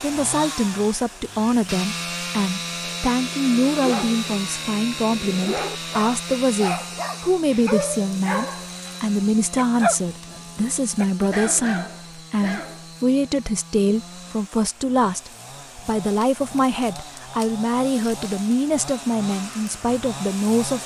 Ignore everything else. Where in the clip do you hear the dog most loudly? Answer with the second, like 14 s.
10 s.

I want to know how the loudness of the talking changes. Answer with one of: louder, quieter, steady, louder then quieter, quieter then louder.
steady.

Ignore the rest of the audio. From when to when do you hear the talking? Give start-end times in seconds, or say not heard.
0.0-20.8.